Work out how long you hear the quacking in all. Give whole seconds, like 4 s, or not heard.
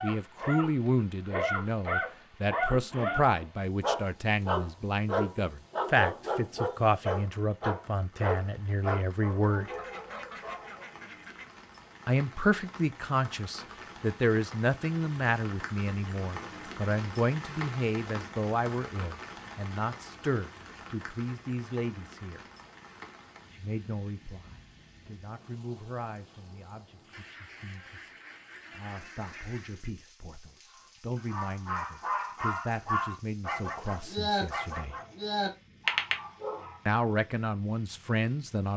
5 s.